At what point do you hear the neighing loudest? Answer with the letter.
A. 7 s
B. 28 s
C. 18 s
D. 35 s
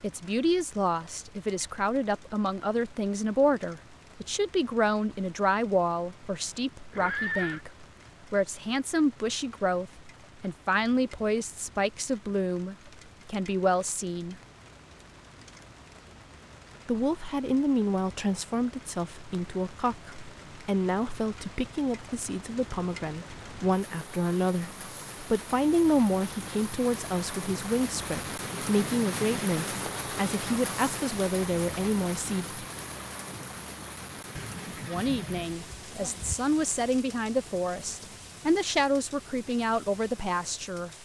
A.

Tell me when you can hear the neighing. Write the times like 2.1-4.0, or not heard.
6.9-7.6, 34.4-36.4.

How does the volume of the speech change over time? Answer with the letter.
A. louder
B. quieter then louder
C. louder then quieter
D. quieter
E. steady
E.